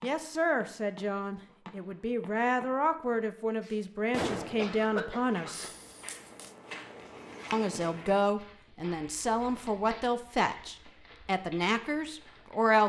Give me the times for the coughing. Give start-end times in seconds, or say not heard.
4.5-5.7.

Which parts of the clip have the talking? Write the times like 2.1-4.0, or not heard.
0.0-5.7, 7.5-12.8.